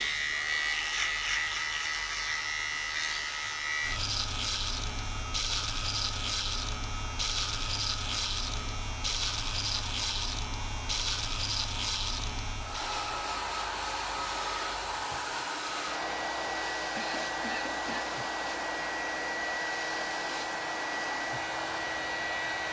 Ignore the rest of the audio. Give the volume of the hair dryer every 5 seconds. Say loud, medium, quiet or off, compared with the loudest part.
medium, medium, loud, loud, loud.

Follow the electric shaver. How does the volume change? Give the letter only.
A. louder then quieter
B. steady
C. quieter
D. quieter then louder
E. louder
C.